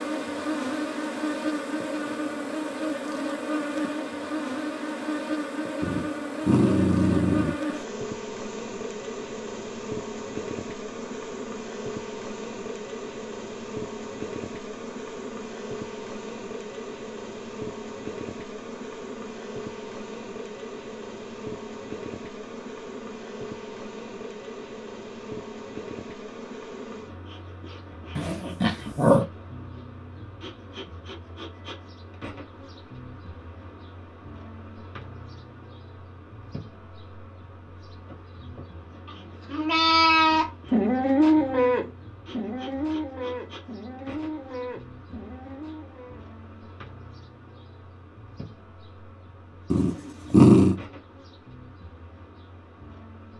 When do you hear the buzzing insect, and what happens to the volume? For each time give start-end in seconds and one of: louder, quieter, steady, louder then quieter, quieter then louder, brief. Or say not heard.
0.0-53.3 quieter.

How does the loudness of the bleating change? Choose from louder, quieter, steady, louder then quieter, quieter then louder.
quieter.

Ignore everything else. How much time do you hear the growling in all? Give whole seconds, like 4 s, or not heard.
4 s.